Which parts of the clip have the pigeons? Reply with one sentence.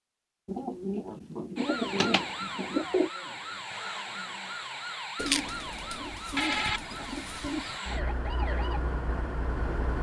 You can hear the pigeons from 0.5 to 3.1 s and from 5.2 to 7.8 s.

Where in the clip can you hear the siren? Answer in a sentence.
You can hear the siren from 1.6 to 9.9 s.